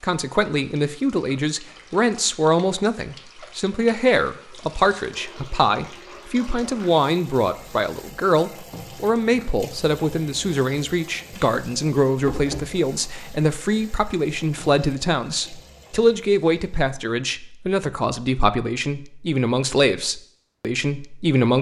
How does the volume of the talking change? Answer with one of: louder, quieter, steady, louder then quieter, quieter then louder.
steady.